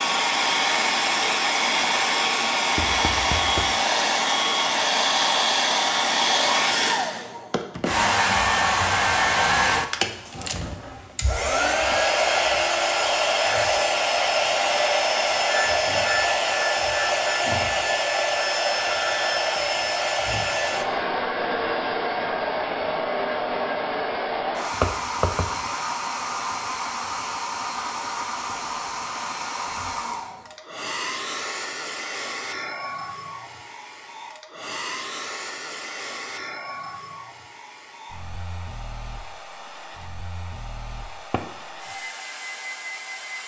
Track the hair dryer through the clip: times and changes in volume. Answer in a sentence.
You can hear the hair dryer from 0.0 to 43.4 s, getting quieter.